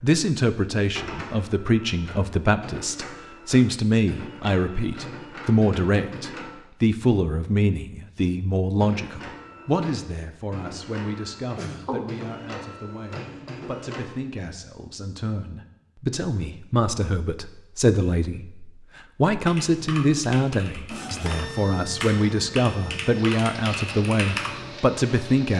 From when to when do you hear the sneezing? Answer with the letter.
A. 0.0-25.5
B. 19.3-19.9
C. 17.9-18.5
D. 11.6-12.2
D.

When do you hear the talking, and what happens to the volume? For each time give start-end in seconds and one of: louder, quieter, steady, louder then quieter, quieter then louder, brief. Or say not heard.
0.0-25.5 quieter then louder.